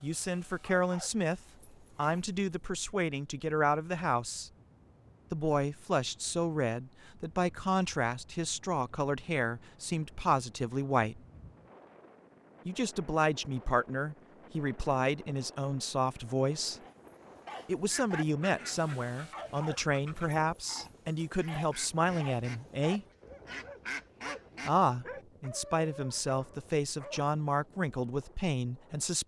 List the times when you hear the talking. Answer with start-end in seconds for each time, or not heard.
0.0-4.5, 5.3-11.2, 12.7-16.8, 17.6-23.1, 24.6-29.2.